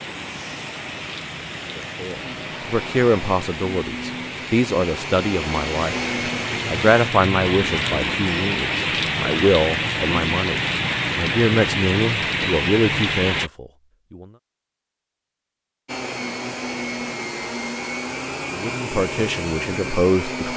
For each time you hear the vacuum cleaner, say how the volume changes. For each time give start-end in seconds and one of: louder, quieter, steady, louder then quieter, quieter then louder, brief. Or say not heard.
0.0-7.1 louder
15.8-20.5 steady.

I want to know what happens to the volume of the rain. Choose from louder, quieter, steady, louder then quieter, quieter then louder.
louder.